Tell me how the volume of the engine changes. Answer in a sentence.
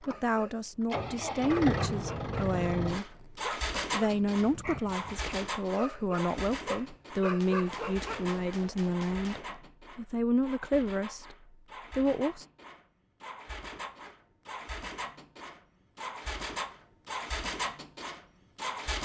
The volume of the engine goes down, then up.